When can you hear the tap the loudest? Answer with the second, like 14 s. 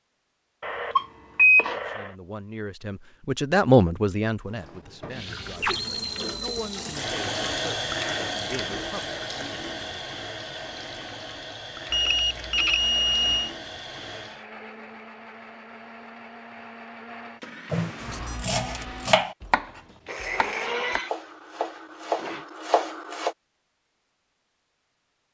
8 s.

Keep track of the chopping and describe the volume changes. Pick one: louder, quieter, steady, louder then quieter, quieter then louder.
quieter then louder.